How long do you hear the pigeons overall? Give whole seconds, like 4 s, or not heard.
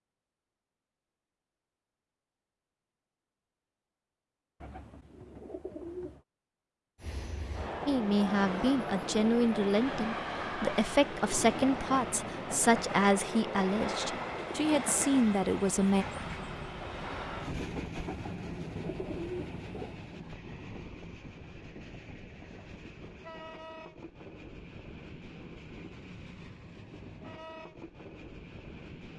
4 s.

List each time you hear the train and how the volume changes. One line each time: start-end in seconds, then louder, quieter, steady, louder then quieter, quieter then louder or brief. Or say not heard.
7.0-29.1 quieter.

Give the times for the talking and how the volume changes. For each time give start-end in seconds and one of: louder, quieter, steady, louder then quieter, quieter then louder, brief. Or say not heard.
7.8-16.1 steady.